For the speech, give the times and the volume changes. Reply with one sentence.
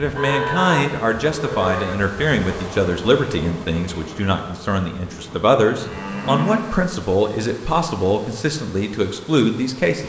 The speech can be heard from 0.0 to 10.0 s, at a steady volume.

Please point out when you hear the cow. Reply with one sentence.
The cow can be heard from 0.1 to 1.9 s and from 5.1 to 6.8 s.